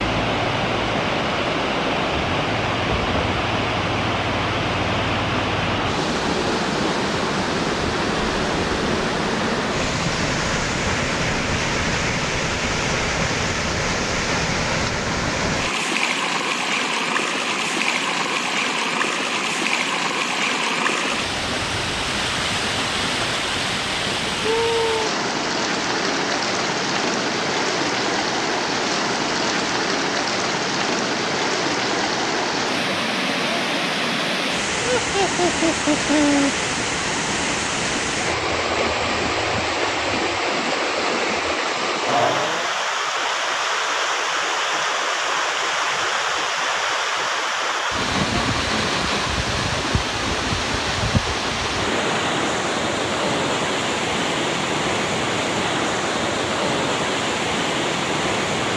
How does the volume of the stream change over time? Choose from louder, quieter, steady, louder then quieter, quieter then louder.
steady.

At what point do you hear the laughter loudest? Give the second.
36 s.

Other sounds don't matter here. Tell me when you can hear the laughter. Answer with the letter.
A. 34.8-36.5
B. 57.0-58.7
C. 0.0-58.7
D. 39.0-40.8
A.